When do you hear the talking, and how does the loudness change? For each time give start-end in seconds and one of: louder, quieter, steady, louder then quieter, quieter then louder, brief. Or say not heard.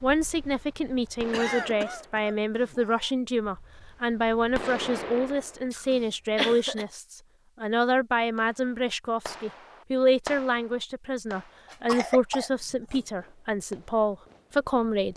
0.0-15.1 steady.